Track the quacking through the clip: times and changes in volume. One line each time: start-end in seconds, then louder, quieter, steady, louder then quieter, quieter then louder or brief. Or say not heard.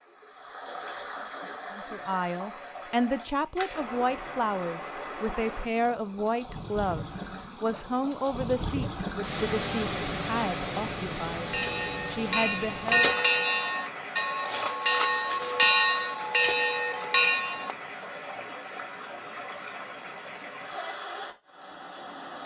not heard.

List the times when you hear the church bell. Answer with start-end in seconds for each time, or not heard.
11.4-17.8.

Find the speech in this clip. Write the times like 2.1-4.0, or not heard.
1.7-13.2.